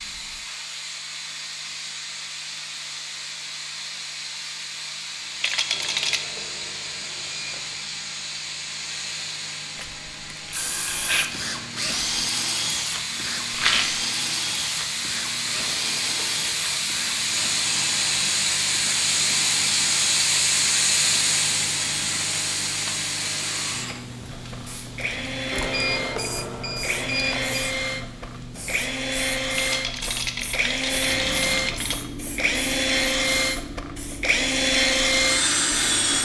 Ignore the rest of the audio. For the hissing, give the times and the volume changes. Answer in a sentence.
The hissing can be heard from 0.0 to 36.2 s, getting louder then quieter.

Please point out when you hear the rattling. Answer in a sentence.
The rattling can be heard from 5.4 to 6.2 s, from 13.5 to 14.0 s and from 29.6 to 32.0 s.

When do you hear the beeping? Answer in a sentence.
You can hear the beeping from 5.7 to 7.8 s, from 15.6 to 16.9 s and from 25.5 to 27.8 s.